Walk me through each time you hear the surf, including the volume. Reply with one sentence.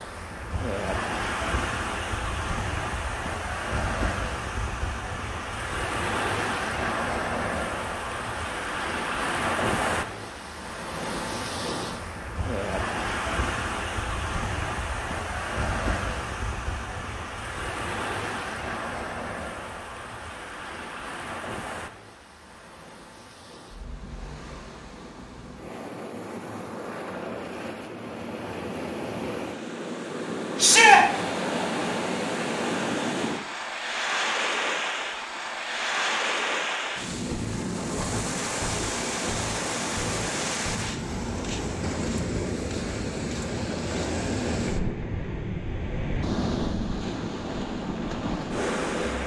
You can hear the surf from 0.0 to 49.2 s, getting quieter then louder.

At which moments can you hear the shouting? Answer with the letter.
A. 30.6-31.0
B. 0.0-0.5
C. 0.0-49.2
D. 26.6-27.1
A.